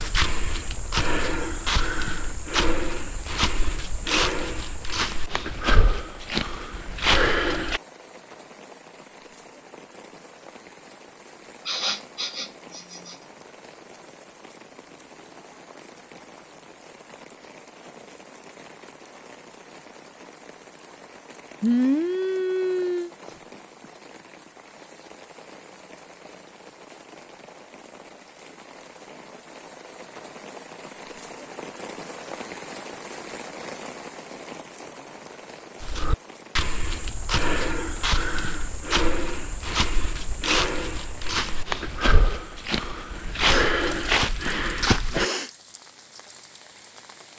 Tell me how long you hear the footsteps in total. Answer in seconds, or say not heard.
17 s.